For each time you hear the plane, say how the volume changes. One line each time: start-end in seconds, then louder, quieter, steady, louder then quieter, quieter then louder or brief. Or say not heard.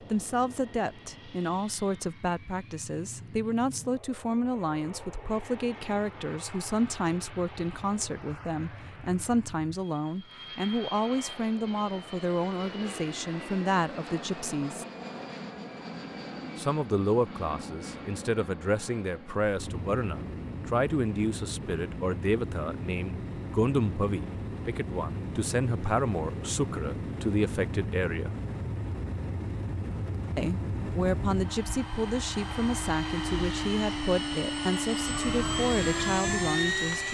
0.0-37.0 louder.